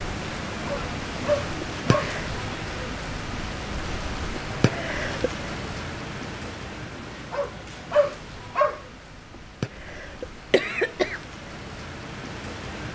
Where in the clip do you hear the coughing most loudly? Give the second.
11 s.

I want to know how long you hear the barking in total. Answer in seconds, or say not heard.
3 s.